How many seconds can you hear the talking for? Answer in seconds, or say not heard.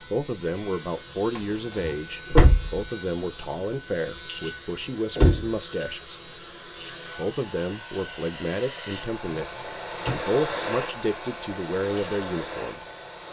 12 s.